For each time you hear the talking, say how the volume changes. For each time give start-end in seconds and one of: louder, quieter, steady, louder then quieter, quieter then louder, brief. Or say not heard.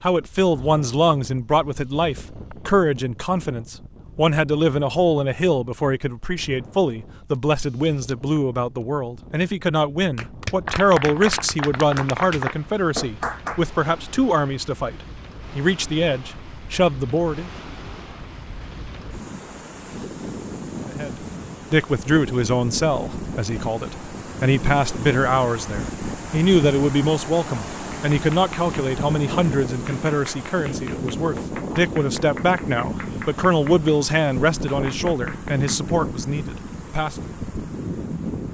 0.0-17.5 steady
20.9-37.1 steady.